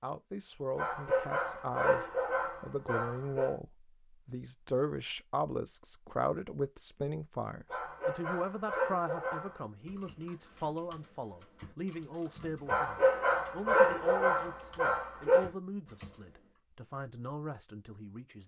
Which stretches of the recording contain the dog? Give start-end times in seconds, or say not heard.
0.8-3.5, 7.7-9.6, 12.7-15.5.